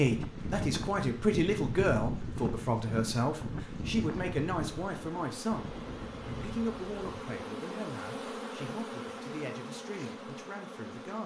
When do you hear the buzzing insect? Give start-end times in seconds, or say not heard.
0.0-11.2.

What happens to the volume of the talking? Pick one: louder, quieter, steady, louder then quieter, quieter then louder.
quieter.